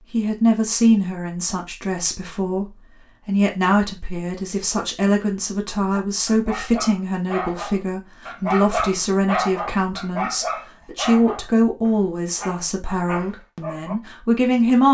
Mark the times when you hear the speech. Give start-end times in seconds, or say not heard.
0.1-14.8.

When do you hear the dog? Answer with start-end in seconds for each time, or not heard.
5.9-13.9.